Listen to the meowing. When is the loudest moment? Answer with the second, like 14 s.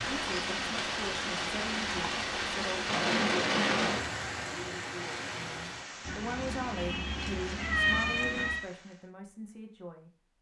8 s.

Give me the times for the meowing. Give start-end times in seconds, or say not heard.
6.0-8.7.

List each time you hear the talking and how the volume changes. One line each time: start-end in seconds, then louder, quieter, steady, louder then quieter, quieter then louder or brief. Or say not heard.
0.1-2.8 brief
5.3-10.1 quieter.